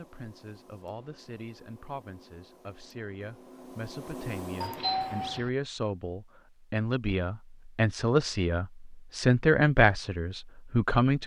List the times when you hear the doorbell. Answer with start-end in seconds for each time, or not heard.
4.6-5.5.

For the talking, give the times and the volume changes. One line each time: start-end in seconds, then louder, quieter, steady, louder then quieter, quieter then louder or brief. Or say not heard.
0.0-11.2 louder.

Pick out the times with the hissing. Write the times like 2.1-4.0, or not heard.
0.0-5.4.